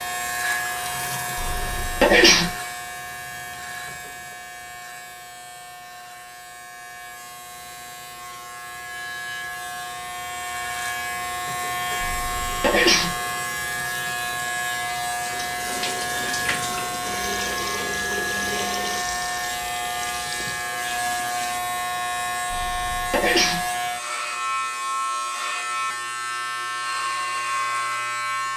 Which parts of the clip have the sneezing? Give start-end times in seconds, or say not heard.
1.4-2.5, 12.0-13.2, 22.5-23.6.